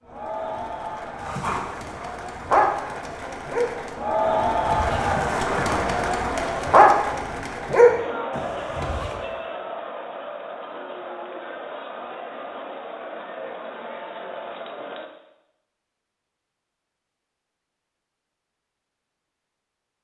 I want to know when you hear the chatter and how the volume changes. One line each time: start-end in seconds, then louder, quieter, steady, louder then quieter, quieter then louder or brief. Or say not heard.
0.0-15.1 louder then quieter.